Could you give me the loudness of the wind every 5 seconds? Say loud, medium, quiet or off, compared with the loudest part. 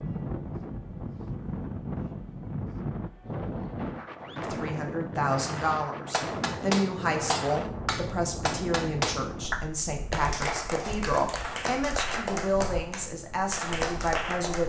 loud, loud, quiet.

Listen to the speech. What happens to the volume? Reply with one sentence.
The volume of the speech stays about the same.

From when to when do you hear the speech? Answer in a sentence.
You can hear the speech from 4.4 to 14.6 s.